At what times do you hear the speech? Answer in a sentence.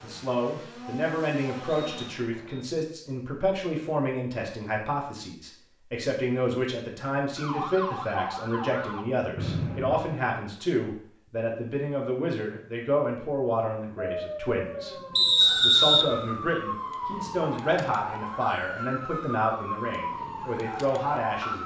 The speech can be heard from 0.0 to 21.6 s.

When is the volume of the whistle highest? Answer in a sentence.
The volume of the whistle peaks at 16 seconds.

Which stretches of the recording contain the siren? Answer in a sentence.
The siren can be heard from 7.3 to 9.1 s and from 13.9 to 21.6 s.